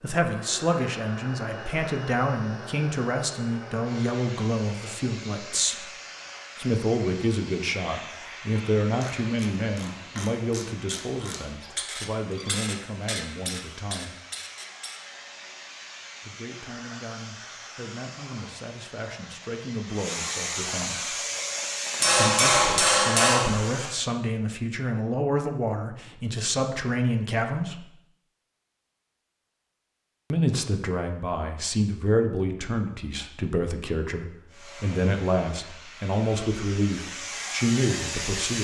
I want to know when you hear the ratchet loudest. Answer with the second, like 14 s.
13 s.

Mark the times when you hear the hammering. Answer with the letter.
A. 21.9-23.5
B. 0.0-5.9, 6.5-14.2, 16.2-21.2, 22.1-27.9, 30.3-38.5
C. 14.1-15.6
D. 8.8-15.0
A.